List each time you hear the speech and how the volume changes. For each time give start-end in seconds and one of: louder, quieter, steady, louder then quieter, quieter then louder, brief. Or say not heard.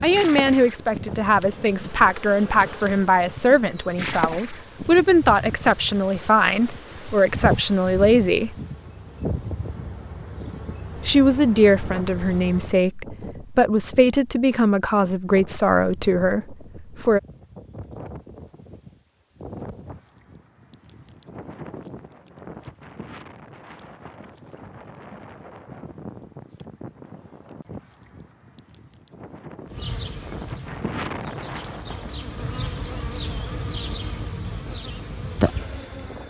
0.0-8.6 steady
11.1-17.2 steady.